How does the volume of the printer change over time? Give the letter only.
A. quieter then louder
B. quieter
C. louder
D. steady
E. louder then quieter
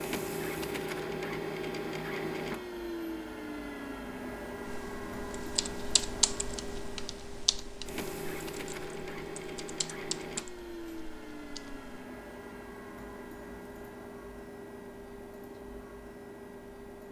B.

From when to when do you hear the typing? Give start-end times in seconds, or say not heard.
4.7-12.1.